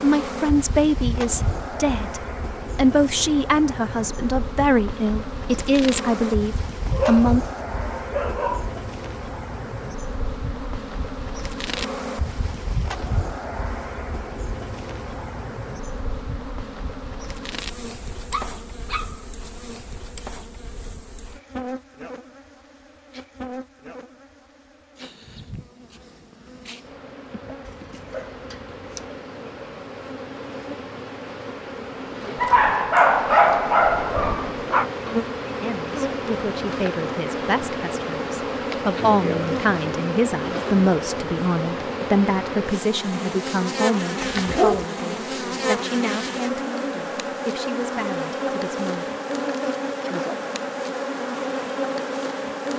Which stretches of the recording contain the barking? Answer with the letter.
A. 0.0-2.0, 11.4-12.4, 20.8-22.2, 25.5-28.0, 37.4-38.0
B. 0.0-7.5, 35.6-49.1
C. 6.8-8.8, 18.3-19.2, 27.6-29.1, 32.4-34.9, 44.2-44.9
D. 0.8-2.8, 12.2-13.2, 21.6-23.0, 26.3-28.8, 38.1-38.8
C.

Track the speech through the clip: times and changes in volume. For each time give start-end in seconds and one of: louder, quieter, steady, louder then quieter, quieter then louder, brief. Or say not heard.
0.0-7.5 steady
35.6-49.1 louder then quieter.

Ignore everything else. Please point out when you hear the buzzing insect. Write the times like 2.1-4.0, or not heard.
0.0-52.7.